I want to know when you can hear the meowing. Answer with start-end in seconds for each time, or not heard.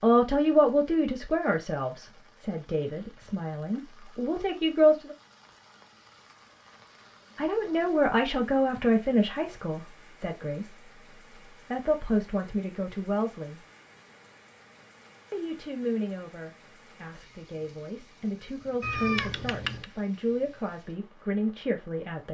18.8-19.9.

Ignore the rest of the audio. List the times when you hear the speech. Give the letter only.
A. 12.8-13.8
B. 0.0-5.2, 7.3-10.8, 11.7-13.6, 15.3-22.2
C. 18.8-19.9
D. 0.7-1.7
B.